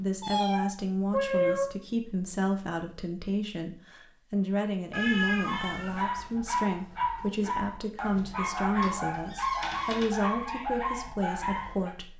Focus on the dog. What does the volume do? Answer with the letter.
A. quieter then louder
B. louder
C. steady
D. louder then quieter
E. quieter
C.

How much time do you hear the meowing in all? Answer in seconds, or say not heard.
4 s.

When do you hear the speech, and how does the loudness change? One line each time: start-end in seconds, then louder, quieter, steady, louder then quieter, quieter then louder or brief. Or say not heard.
0.0-12.1 steady.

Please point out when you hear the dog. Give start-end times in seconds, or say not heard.
5.5-11.9.